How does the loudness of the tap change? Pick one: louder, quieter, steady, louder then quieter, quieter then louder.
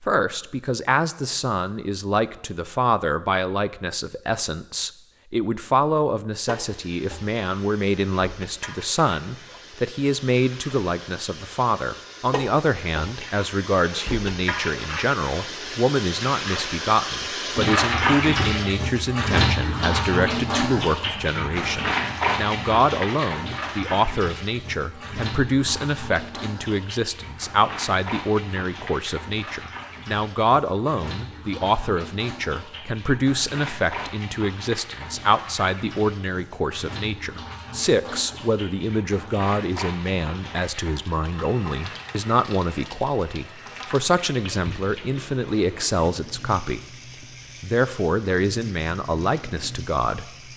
louder then quieter.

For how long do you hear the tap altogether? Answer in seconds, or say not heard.
44 s.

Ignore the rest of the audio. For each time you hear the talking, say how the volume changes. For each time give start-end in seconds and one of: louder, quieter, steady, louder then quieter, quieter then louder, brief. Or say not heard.
0.0-46.8 steady
47.6-50.3 brief.